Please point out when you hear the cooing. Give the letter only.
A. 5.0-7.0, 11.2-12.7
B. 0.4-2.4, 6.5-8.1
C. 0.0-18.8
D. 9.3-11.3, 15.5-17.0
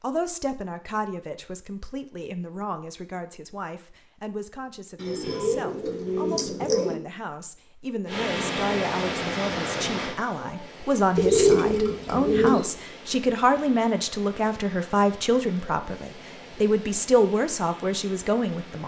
A.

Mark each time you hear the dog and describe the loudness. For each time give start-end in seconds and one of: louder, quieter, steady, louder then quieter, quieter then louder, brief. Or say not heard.
not heard.